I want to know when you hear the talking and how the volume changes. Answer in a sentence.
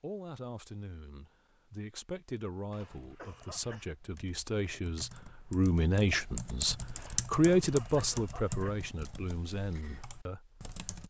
The talking can be heard from 0.0 to 11.0 s, getting louder then quieter.